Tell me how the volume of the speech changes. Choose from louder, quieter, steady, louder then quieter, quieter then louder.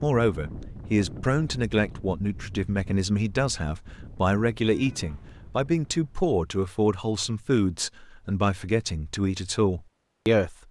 steady.